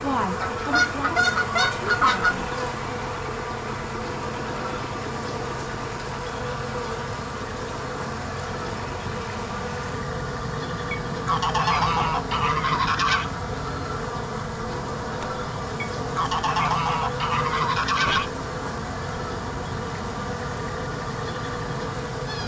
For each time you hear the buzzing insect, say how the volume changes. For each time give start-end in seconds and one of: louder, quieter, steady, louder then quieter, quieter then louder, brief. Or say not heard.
0.0-22.4 steady.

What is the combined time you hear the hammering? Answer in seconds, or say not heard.
not heard.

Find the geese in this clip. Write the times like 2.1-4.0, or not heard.
0.4-2.4, 11.1-13.2, 15.8-18.3.